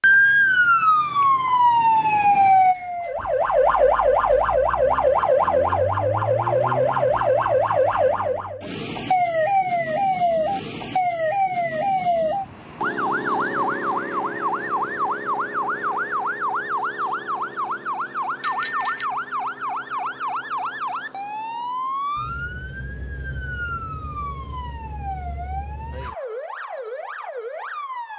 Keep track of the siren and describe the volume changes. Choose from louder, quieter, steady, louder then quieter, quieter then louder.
quieter.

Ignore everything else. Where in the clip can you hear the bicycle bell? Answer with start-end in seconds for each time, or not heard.
18.4-19.1.